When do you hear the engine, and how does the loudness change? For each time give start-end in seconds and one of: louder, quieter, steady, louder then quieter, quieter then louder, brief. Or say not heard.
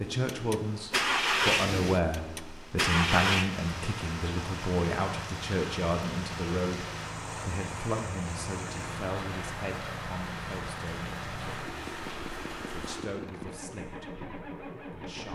0.0-15.3 quieter.